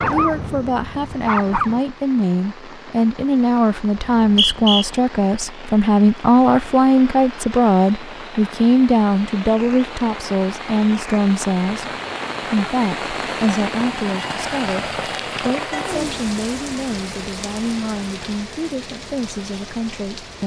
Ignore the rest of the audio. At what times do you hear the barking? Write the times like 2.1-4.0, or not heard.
0.0-1.8.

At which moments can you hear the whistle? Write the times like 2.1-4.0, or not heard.
4.0-4.8.